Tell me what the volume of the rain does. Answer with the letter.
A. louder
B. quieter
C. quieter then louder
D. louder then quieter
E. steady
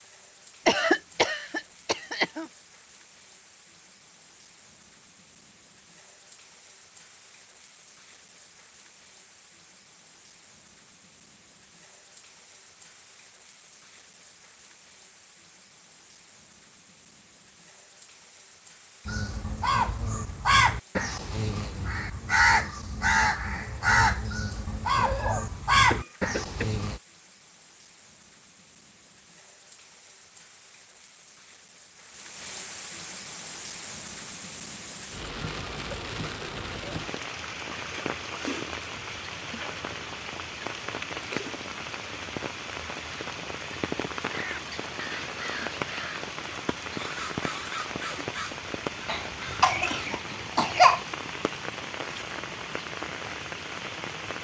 A.